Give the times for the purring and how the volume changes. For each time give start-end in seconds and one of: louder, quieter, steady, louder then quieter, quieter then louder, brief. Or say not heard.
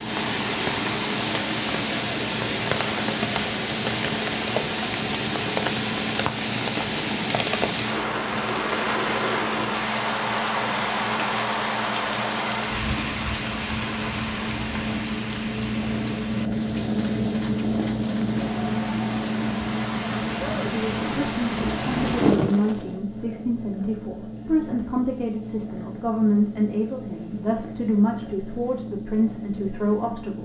0.0-30.4 louder then quieter.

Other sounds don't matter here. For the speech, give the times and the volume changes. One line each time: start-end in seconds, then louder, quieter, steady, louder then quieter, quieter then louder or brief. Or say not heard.
20.7-30.4 steady.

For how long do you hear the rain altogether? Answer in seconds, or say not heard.
23 s.